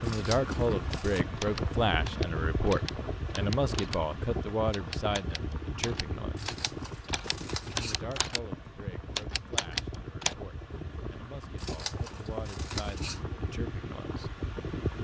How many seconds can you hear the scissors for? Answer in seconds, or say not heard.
5 s.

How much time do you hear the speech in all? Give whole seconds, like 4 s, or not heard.
13 s.